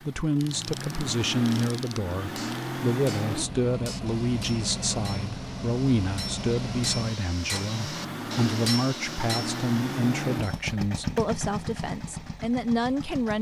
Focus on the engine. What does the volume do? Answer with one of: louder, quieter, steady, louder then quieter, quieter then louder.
steady.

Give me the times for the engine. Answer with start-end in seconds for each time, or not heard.
0.0-13.3.